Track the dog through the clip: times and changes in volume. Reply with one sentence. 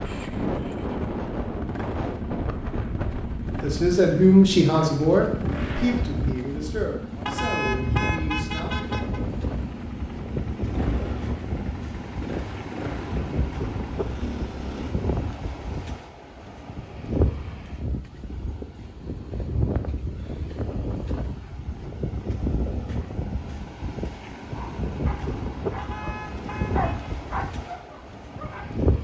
You can hear the dog from 24.5 to 28.8 s, getting louder then quieter.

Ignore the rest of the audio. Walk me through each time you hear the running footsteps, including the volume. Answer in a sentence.
You can't hear the running footsteps here.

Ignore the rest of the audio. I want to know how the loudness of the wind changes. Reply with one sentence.
The volume of the wind stays about the same.